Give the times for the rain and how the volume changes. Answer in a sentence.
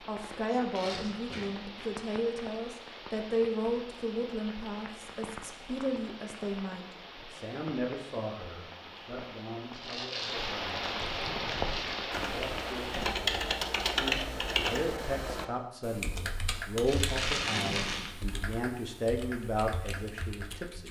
You can hear the rain from 0.0 to 13.2 s, getting louder.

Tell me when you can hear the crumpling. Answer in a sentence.
You can hear the crumpling from 0.8 to 1.5 s, from 9.7 to 12.1 s and from 16.9 to 18.1 s.